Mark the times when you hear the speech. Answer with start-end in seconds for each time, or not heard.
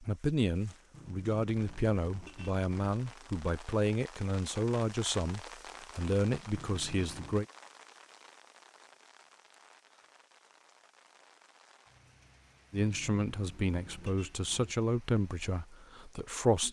0.0-7.5, 12.7-16.6.